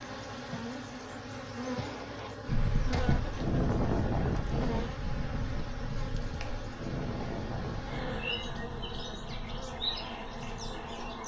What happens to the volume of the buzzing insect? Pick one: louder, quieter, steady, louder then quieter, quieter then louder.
steady.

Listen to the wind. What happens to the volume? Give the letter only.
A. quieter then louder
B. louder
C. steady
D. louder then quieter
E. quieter
E.